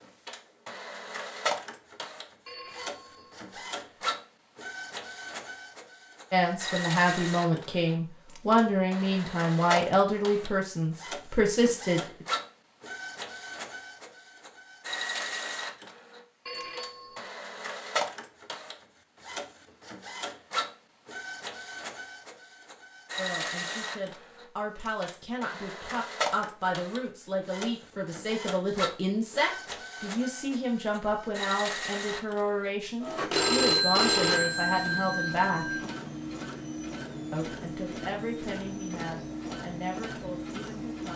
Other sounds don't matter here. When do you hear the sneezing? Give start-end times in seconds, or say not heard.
not heard.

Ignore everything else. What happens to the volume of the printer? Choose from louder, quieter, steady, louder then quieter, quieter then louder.
steady.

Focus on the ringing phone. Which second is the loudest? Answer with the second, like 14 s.
34 s.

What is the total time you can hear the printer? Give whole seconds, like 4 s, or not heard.
41 s.